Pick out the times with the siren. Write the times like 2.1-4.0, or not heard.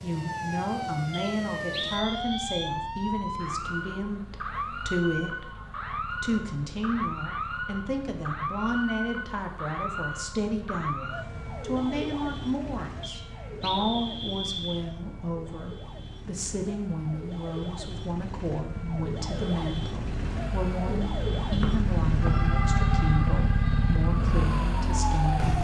0.1-25.5.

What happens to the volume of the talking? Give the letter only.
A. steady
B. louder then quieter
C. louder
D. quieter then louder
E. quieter
A.